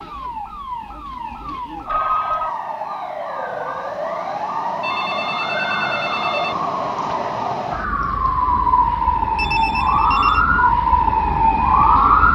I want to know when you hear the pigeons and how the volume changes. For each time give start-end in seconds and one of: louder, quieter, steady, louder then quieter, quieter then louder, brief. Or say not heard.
not heard.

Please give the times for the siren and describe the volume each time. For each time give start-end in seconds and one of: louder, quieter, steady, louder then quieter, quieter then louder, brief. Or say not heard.
0.0-12.3 louder.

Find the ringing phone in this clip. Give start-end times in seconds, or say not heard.
1.9-2.5, 4.8-6.5, 9.3-10.4.